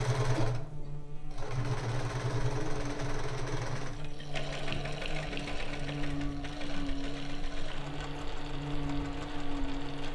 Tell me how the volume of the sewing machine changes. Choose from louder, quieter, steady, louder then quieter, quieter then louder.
quieter.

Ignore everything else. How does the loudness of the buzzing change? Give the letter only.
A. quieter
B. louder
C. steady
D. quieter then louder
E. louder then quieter
B.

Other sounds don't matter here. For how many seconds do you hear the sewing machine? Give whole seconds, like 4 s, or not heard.
10 s.